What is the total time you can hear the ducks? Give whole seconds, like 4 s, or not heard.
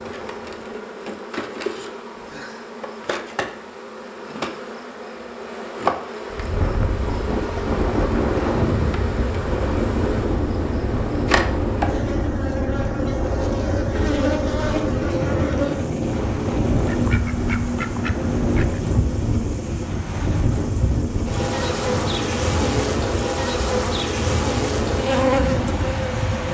3 s.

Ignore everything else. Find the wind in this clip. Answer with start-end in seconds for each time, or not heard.
6.3-26.4.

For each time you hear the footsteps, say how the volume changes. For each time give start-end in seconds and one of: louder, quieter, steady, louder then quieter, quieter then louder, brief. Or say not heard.
not heard.